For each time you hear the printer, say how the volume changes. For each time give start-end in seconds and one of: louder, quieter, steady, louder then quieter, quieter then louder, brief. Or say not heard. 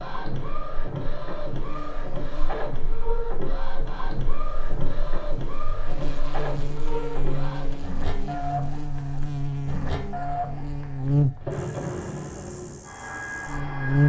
0.0-14.0 steady.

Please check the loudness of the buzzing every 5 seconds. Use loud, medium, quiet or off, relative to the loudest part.
quiet, medium, loud.